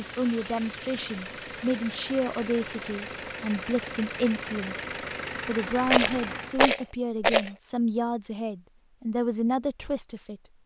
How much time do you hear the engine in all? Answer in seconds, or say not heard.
7 s.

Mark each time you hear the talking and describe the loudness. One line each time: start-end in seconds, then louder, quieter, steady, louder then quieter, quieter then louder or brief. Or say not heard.
0.0-10.4 steady.